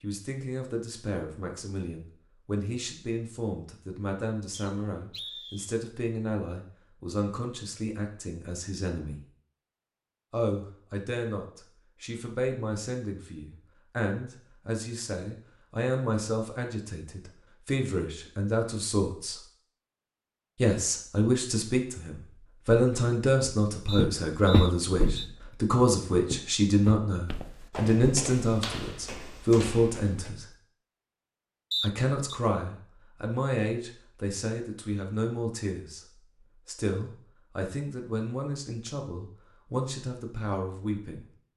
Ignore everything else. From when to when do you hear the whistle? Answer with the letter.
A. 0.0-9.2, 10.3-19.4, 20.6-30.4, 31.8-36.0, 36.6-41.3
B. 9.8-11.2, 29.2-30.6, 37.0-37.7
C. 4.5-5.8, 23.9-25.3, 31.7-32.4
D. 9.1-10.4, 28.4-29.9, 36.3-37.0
C.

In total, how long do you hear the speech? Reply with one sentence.
You can hear the speech for 37 seconds altogether.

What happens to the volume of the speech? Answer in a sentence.
The loudness of the speech goes up, then down.